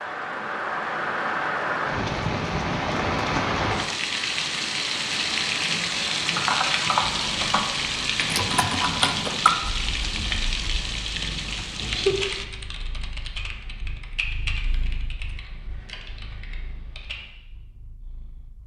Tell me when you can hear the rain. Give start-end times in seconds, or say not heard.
0.0-12.4.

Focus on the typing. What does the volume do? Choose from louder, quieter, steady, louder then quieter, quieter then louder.
quieter.